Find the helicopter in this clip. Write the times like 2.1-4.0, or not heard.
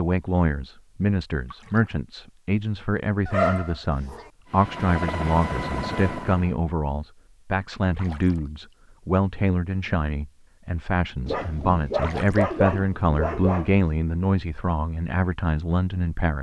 4.5-6.5.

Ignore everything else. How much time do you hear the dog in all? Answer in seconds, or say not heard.
4 s.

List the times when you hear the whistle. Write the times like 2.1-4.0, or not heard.
not heard.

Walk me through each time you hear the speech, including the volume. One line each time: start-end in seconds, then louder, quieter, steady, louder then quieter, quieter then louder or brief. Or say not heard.
0.0-16.3 steady.